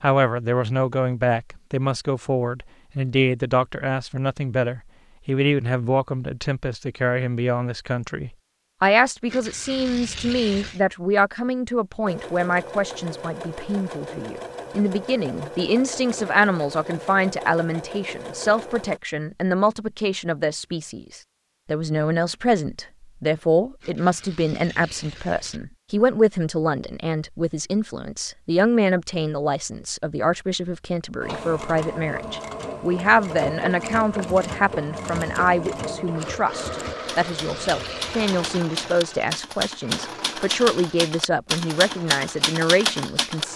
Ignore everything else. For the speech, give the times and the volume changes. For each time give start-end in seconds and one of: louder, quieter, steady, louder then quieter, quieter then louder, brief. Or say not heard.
0.0-43.5 steady.